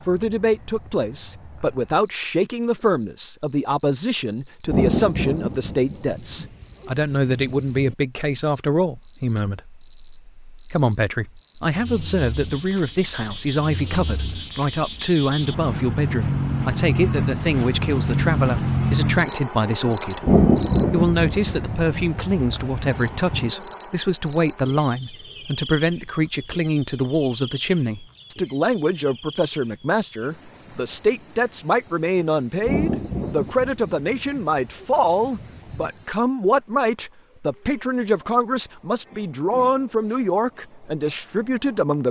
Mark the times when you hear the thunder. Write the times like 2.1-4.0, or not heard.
4.7-8.0, 20.2-23.5, 32.6-35.9.